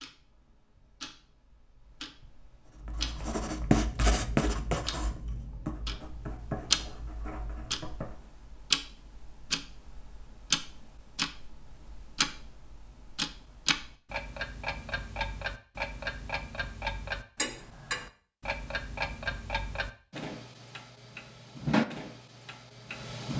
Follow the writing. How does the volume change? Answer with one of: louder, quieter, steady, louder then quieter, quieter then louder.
quieter.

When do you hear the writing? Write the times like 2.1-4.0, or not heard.
2.7-8.2.